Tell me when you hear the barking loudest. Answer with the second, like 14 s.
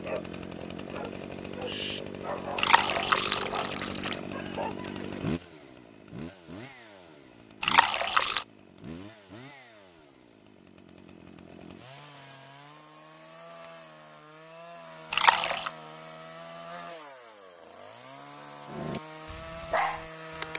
20 s.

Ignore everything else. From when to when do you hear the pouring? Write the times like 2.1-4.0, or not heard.
2.5-4.2, 7.6-8.4, 15.1-15.7.